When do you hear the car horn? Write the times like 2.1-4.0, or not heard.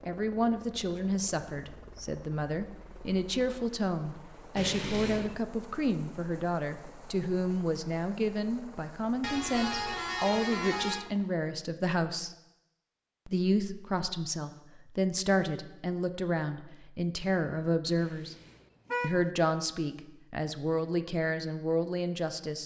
4.5-5.4, 9.2-11.2, 18.0-19.2.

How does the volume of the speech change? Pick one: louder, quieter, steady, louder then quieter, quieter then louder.
steady.